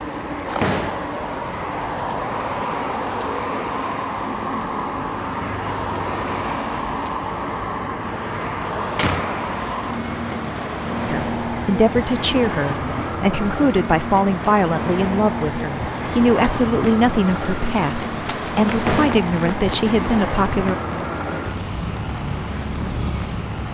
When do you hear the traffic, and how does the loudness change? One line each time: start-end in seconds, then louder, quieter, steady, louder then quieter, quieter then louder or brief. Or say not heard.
0.0-23.6 steady.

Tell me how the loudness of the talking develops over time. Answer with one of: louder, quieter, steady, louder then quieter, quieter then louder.
steady.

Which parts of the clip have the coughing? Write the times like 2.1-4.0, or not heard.
not heard.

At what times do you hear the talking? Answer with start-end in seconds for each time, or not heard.
11.1-20.8.